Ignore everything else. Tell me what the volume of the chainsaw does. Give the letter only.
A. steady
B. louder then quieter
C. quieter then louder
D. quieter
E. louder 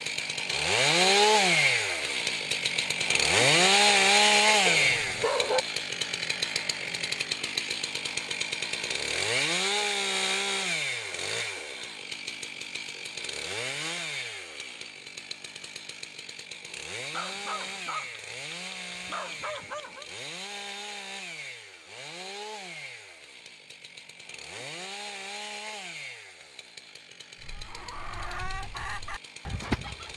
D.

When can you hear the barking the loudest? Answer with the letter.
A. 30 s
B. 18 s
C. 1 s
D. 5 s
D.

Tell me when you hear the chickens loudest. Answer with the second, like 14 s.
30 s.